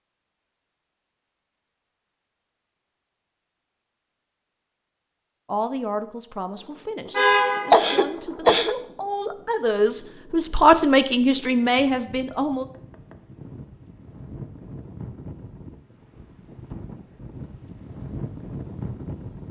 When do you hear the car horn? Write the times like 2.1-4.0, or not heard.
7.1-8.0.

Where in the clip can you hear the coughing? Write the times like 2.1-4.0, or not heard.
7.7-8.8.